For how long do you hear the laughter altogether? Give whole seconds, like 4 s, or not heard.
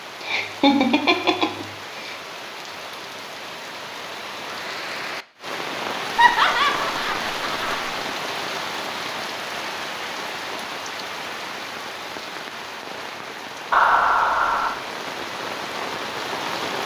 5 s.